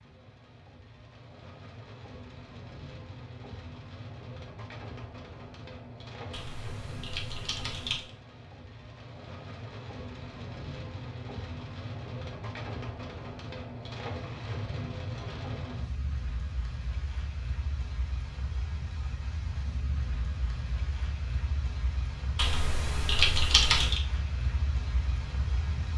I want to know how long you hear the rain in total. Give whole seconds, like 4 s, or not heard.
26 s.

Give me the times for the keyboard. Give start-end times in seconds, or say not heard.
6.3-8.1, 22.4-24.0.